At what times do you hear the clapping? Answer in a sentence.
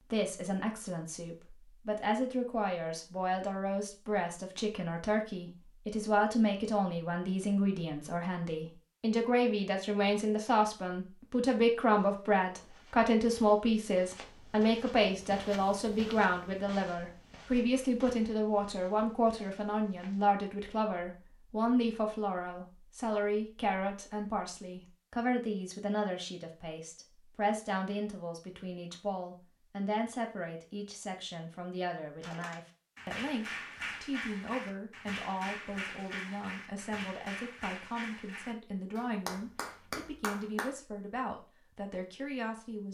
The clapping can be heard from 32.2 to 40.7 s.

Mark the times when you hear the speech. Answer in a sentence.
You can hear the speech from 0.0 to 42.9 s.